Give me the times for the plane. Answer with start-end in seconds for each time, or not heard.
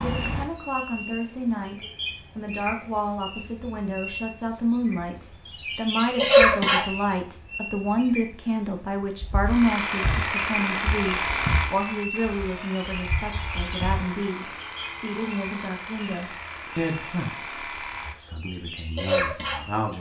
not heard.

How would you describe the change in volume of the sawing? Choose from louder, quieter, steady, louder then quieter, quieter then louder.
quieter.